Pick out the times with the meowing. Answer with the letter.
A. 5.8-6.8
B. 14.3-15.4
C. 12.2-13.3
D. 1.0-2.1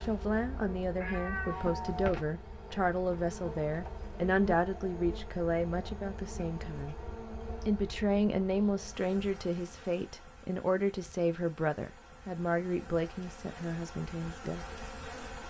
D.